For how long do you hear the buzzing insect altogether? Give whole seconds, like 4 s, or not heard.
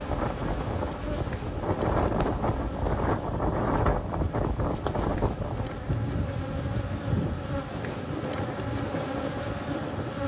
10 s.